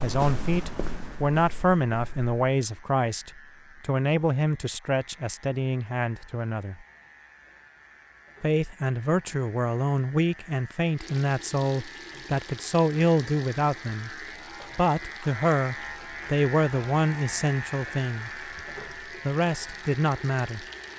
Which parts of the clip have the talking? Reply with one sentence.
The talking can be heard from 0.0 to 6.8 s, from 8.4 to 14.1 s, from 14.8 to 18.3 s and from 19.2 to 20.6 s.